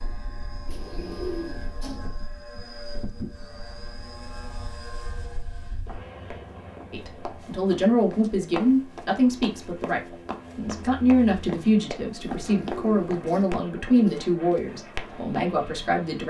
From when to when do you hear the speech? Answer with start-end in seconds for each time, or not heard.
6.9-16.2.